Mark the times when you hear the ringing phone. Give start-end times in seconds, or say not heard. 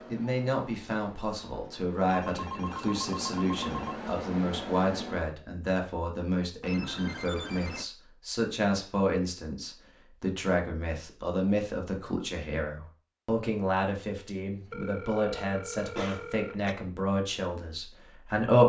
2.0-4.0, 6.6-7.8, 14.7-16.6.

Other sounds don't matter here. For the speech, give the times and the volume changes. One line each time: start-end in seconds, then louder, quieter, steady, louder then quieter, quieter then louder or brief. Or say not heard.
0.1-18.6 steady.